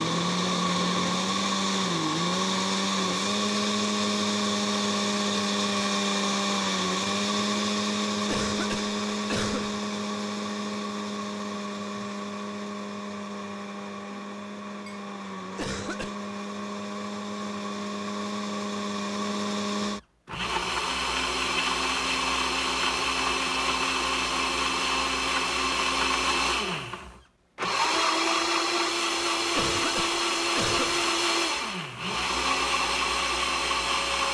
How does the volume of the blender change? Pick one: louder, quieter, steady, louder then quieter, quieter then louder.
quieter then louder.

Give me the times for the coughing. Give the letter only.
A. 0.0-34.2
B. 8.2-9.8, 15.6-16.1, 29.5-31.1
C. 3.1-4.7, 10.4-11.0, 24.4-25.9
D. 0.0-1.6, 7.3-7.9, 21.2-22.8
B.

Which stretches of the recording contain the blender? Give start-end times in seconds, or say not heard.
0.0-34.2.